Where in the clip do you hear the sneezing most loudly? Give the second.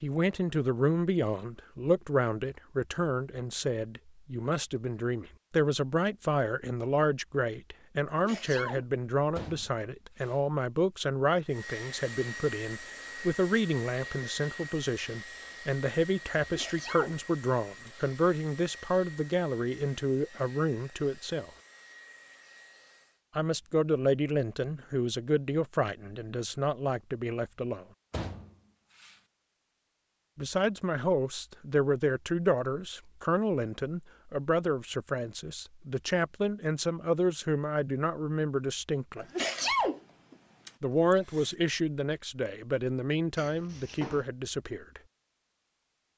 40 s.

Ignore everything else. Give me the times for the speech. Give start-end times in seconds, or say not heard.
0.0-21.5, 23.4-27.9, 30.4-39.2, 40.8-45.0.